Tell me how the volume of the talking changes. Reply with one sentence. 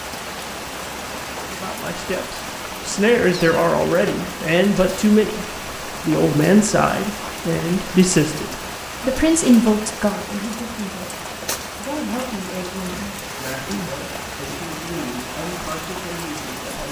The loudness of the talking goes down.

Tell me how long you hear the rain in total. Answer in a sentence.
You can hear the rain for 17 seconds altogether.